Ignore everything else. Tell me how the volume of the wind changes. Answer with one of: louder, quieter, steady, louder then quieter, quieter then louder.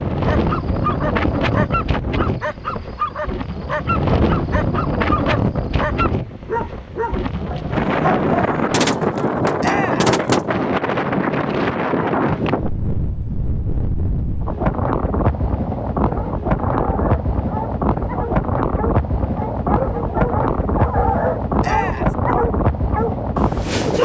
steady.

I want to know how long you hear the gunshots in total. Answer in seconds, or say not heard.
2 s.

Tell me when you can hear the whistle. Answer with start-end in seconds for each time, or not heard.
not heard.